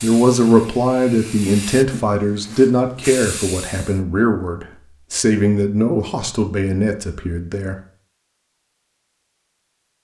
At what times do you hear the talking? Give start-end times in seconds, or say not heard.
0.0-7.8.